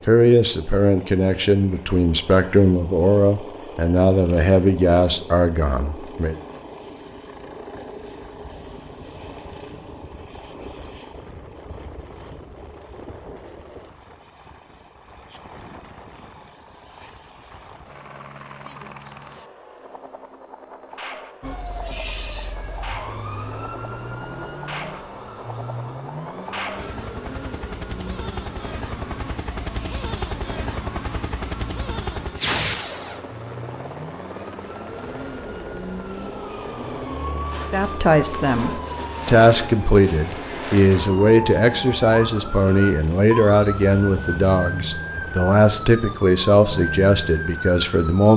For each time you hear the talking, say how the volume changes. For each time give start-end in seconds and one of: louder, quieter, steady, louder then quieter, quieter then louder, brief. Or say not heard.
0.1-6.3 steady
37.7-48.3 steady.